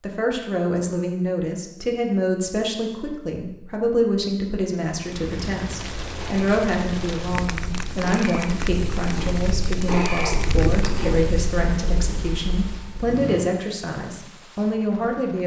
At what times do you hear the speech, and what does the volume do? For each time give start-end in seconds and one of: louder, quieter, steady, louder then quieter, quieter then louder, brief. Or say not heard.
0.0-15.4 steady.